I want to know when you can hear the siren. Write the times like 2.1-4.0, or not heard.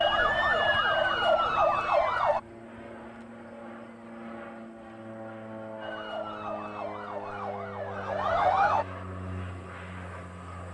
0.0-2.4, 5.8-8.8.